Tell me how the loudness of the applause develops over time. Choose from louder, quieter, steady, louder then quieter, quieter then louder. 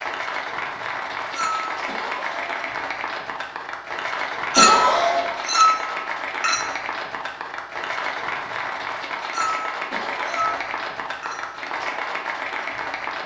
steady.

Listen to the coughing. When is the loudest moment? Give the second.
5 s.